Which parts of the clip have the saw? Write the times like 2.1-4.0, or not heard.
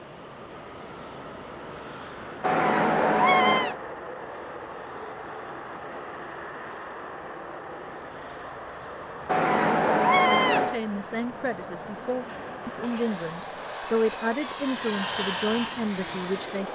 12.2-16.7.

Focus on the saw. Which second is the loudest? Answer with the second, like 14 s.
15 s.